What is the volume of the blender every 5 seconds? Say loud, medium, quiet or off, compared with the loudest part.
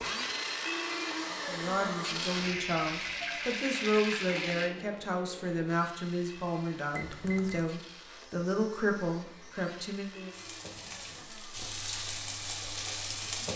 loud, quiet, quiet.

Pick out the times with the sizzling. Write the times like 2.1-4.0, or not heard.
2.4-4.7, 10.2-13.5.